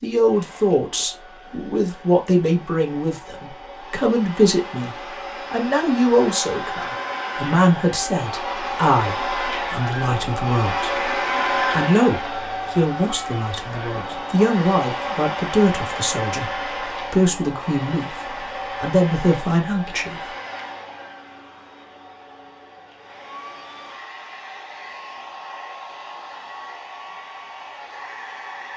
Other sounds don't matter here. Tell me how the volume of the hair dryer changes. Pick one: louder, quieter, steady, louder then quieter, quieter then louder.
louder then quieter.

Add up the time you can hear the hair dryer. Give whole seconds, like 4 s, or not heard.
29 s.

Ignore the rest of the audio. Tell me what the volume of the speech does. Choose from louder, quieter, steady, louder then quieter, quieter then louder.
steady.